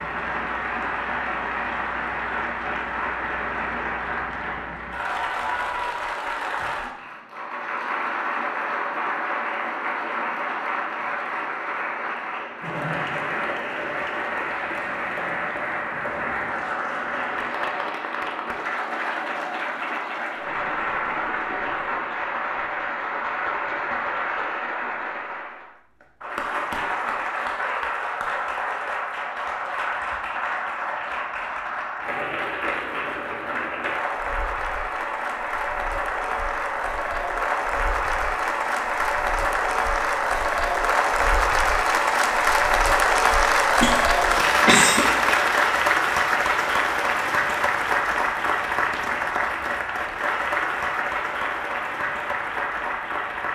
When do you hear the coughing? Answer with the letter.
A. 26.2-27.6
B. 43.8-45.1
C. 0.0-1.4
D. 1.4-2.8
B.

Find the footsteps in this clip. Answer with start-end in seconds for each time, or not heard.
not heard.